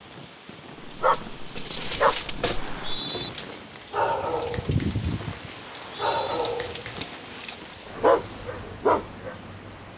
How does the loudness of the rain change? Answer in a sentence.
The volume of the rain goes up, then down.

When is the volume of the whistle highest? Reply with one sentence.
The loudest moment of the whistle is at 3 seconds.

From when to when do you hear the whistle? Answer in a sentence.
You can hear the whistle from 2.5 to 3.3 s and from 5.7 to 6.4 s.